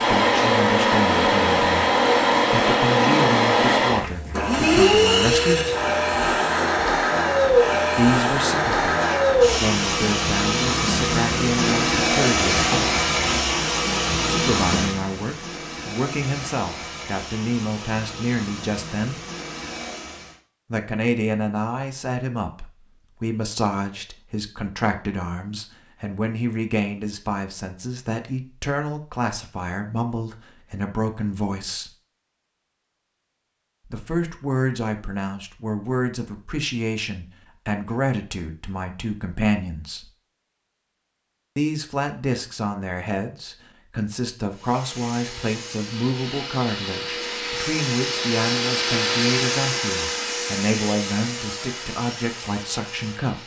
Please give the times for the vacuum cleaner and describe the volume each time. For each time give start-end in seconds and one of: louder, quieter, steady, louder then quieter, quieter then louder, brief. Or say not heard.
0.0-20.4 quieter
44.5-53.4 louder then quieter.